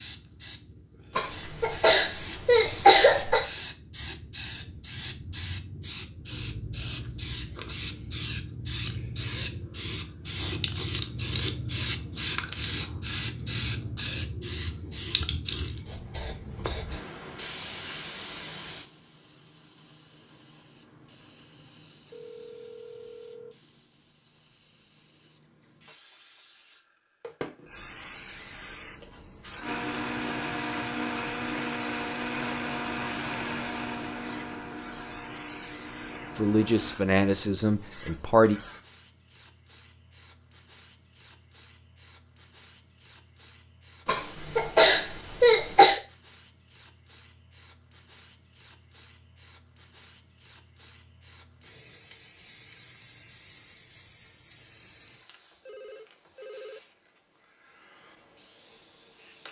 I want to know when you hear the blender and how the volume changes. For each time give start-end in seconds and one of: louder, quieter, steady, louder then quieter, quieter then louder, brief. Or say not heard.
29.6-37.0 quieter.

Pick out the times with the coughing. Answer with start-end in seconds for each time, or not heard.
1.1-3.5, 44.0-46.0.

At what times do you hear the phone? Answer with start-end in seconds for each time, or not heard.
22.1-23.6, 54.8-56.8.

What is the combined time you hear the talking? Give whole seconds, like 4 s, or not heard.
2 s.